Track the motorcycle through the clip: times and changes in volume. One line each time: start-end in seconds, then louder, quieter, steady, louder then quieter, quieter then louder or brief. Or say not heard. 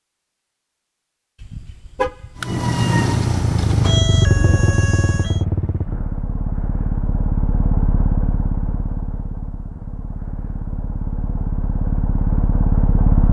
2.5-13.2 quieter then louder.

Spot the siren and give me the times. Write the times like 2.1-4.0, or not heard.
2.4-5.4.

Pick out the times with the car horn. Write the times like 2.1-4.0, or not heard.
1.4-2.6.